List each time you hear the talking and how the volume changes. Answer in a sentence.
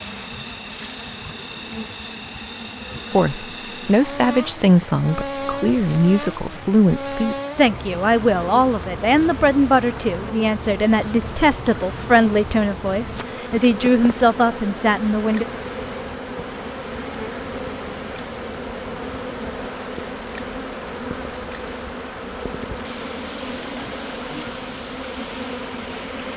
The talking can be heard from 3.1 to 15.4 s, at a steady volume.